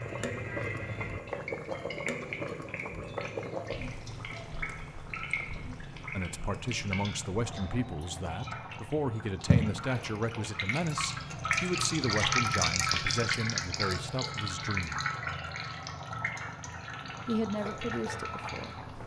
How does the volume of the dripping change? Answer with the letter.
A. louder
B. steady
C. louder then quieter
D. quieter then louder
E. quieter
C.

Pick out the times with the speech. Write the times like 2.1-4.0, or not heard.
6.2-15.1, 17.2-18.8.